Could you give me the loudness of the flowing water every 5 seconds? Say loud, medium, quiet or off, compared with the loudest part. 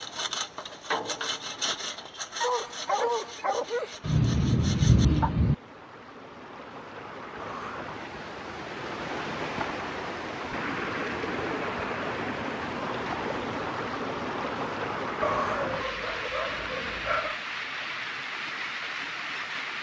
quiet, medium, loud, loud.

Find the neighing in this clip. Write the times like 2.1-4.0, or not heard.
not heard.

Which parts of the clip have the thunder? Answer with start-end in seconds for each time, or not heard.
4.0-5.5.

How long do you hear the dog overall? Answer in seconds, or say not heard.
4 s.